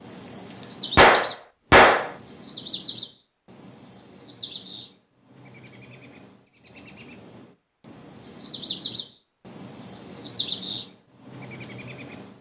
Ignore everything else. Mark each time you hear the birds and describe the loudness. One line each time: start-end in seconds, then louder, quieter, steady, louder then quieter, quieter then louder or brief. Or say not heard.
0.0-12.3 quieter then louder.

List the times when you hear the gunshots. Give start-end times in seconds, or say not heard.
0.9-2.1.